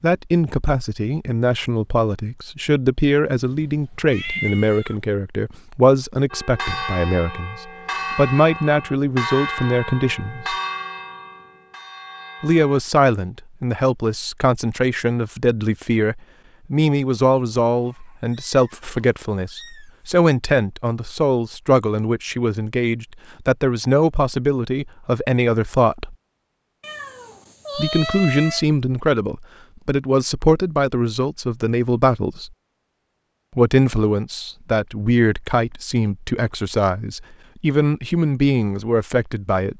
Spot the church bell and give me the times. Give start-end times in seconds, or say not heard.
6.3-12.8.